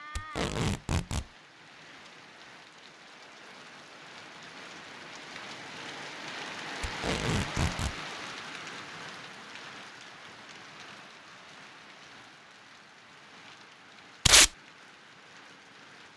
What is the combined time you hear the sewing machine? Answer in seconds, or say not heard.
not heard.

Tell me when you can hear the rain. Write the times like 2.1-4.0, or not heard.
0.0-16.1.